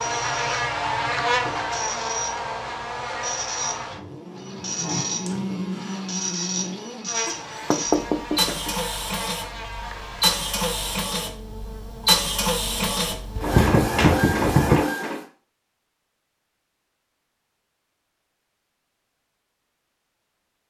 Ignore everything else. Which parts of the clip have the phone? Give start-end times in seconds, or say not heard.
not heard.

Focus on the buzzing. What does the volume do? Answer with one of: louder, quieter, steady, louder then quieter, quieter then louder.
quieter.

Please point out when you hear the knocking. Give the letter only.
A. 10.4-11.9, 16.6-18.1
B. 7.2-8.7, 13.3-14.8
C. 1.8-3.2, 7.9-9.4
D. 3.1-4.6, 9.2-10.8
B.